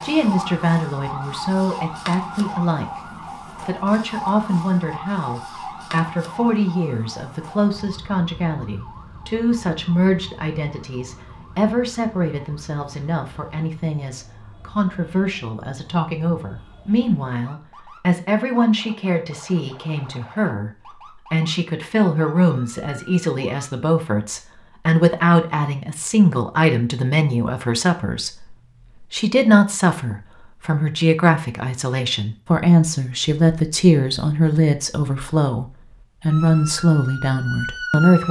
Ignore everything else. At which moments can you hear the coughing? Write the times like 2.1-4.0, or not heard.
not heard.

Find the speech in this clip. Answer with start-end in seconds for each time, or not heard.
0.0-2.9, 3.6-38.2.